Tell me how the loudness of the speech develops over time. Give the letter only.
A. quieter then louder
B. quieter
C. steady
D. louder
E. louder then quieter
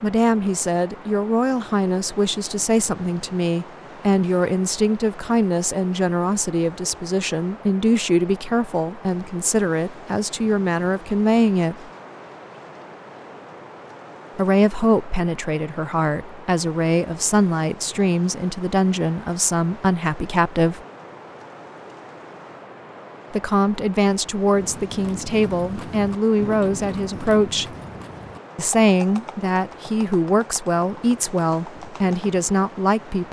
C.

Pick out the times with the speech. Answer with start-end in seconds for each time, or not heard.
0.0-11.9, 14.3-20.8, 23.3-27.8, 28.6-33.2.